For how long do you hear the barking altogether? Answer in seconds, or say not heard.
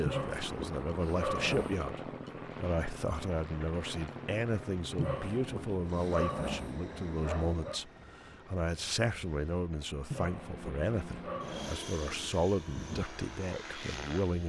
7 s.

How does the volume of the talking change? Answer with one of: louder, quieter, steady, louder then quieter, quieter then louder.
steady.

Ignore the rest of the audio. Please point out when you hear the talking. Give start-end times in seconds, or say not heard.
0.0-14.4.